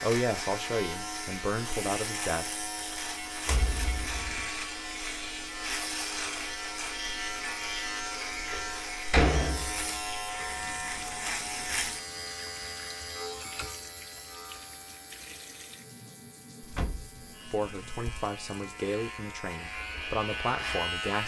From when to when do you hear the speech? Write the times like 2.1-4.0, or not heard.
0.0-2.5, 17.5-21.2.